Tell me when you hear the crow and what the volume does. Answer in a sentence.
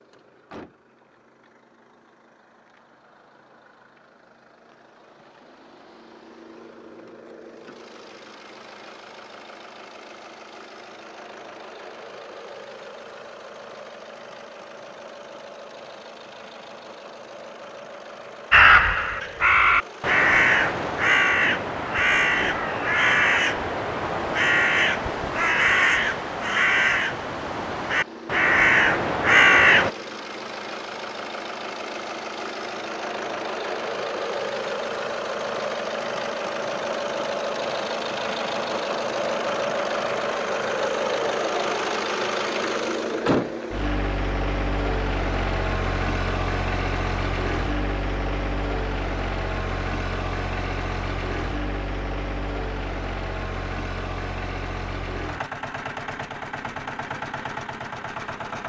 The crow can be heard from 18.5 to 29.9 s, at a steady volume.